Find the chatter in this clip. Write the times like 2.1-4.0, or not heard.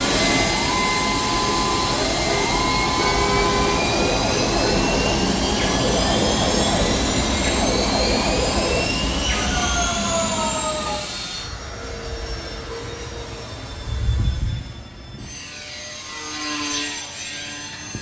not heard.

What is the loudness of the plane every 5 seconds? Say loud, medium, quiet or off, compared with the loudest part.
loud, loud, medium, medium.